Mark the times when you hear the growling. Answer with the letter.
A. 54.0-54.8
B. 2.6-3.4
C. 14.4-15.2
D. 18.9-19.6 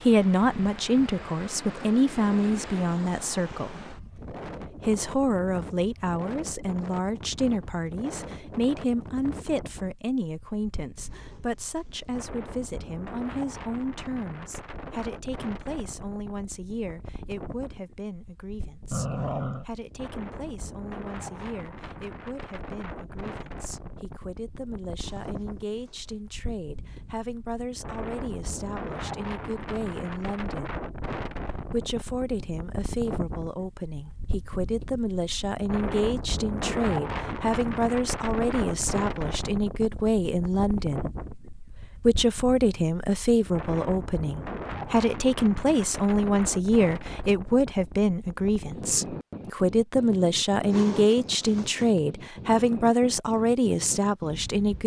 D.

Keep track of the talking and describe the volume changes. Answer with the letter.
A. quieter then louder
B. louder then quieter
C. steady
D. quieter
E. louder
A.